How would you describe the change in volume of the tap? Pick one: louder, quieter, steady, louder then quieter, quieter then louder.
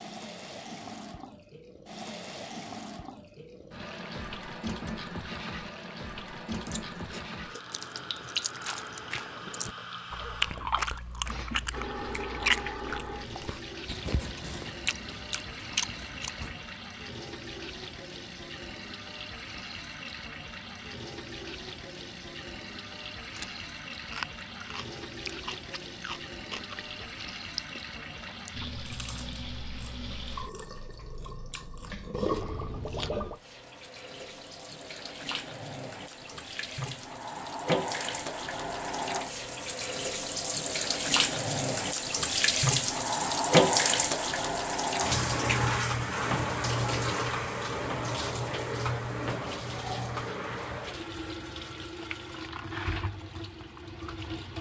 louder.